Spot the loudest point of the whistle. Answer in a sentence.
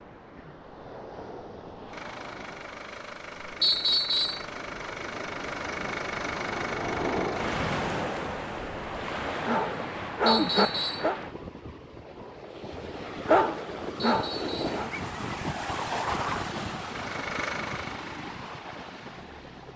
The volume of the whistle peaks at 4 seconds.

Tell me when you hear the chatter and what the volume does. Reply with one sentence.
The chatter can't be heard in this clip.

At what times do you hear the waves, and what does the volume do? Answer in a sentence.
You can hear the waves from 0.0 to 19.7 s, getting louder.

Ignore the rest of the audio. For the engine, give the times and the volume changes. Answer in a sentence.
The engine can be heard from 1.9 to 7.7 s, getting louder; and briefly from 16.9 to 19.7 s.